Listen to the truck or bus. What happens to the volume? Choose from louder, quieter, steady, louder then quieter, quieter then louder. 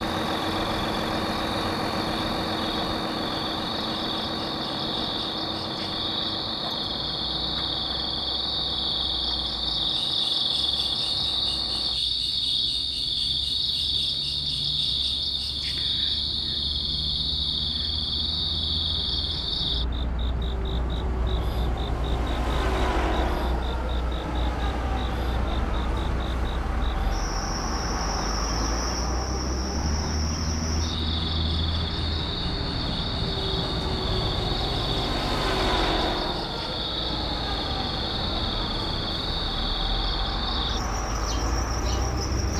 quieter then louder.